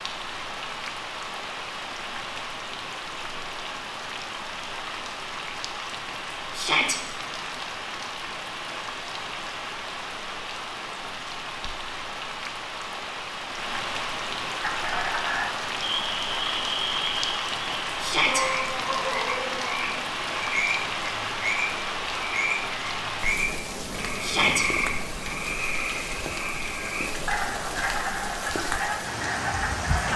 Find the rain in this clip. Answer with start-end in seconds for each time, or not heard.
0.0-30.1.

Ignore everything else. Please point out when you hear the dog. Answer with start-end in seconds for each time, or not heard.
not heard.